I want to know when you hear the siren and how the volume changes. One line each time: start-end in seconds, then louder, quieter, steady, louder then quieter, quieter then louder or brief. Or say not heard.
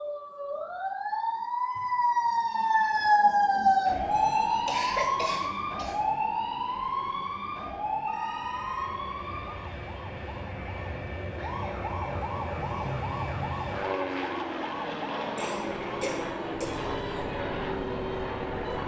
0.0-18.8 quieter.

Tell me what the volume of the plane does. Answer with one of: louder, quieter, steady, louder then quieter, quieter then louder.
louder.